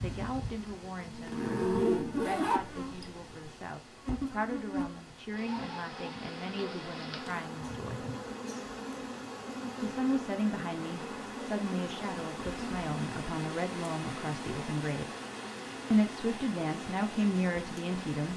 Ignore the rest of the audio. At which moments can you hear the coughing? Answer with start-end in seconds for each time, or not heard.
7.5-8.7.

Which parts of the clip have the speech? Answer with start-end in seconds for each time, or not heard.
0.0-8.1, 9.8-15.1, 15.9-18.3.